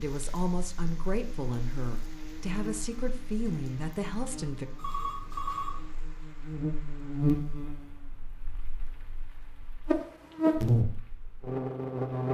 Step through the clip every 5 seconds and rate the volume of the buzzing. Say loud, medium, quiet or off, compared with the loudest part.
quiet, medium, loud.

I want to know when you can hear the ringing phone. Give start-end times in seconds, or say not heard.
4.8-5.8.